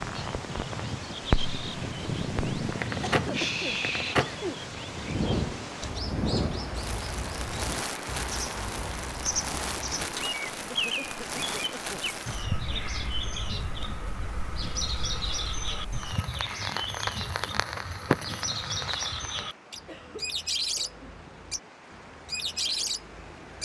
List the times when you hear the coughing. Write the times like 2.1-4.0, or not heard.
3.0-4.6, 10.7-12.1, 19.9-21.1.